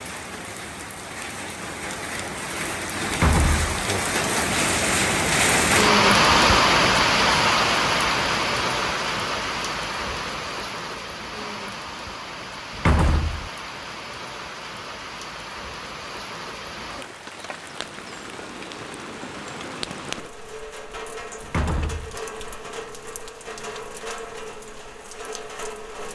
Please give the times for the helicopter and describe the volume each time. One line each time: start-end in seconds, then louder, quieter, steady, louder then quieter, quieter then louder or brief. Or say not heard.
not heard.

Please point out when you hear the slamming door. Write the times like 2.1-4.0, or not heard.
3.1-3.8, 12.7-13.5, 21.4-22.2.